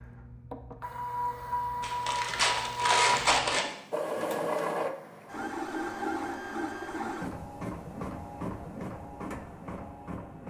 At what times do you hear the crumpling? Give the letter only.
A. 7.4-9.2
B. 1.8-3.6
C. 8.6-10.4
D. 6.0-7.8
B.